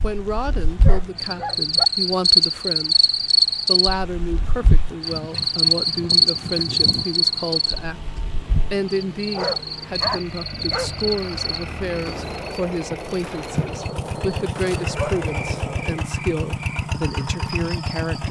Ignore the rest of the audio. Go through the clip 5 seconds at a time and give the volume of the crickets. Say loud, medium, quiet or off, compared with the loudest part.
loud, loud, medium, quiet.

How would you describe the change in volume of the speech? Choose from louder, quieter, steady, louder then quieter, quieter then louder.
steady.